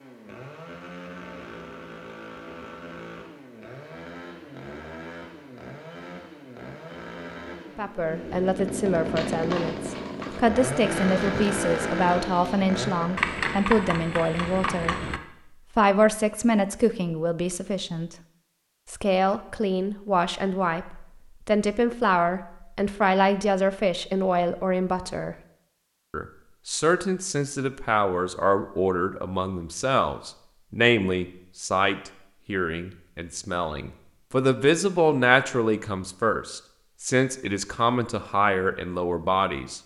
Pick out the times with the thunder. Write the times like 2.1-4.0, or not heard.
not heard.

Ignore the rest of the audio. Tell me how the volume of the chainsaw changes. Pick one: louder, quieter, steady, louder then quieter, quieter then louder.
louder.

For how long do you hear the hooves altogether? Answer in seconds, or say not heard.
6 s.